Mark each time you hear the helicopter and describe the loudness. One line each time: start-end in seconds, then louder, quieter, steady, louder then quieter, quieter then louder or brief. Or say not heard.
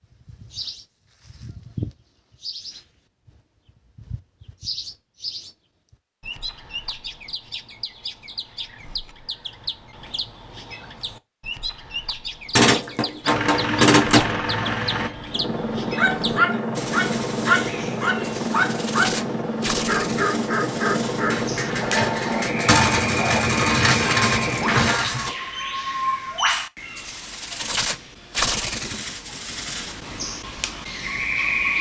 13.2-25.0 steady.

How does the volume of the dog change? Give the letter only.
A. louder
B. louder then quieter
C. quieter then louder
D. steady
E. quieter
E.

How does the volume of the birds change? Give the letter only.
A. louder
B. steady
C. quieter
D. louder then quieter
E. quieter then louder
A.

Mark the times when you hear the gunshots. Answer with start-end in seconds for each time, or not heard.
12.6-14.3, 21.3-25.3.